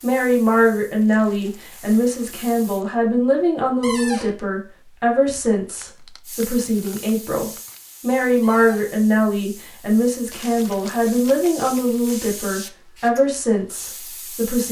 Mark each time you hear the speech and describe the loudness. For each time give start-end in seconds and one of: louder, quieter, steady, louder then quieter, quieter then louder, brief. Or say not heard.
0.0-14.6 steady.